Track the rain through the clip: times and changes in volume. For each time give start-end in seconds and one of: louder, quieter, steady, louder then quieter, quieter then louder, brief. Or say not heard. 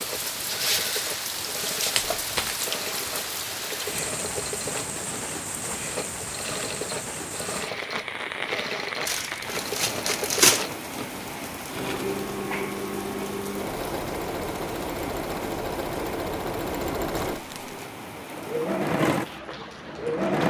0.0-20.4 quieter.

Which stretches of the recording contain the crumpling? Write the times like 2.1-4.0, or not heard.
1.9-2.6, 9.1-10.7, 17.3-17.9.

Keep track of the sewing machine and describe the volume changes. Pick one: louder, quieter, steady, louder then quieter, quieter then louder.
louder.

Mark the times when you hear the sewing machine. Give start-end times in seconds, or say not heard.
0.0-20.4.